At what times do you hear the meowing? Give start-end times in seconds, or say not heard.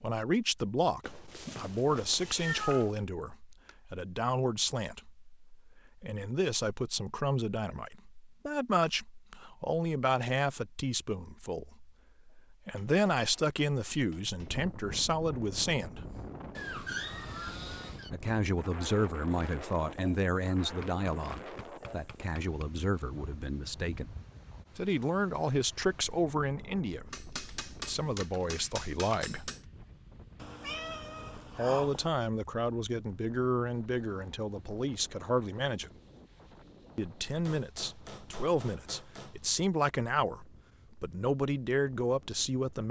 1.0-3.0, 16.6-18.1, 30.4-32.1.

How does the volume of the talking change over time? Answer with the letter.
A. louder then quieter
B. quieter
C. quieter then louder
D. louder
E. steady
E.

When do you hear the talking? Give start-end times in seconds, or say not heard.
0.0-16.1, 18.1-24.1, 24.8-29.5, 31.4-35.9, 37.0-42.8.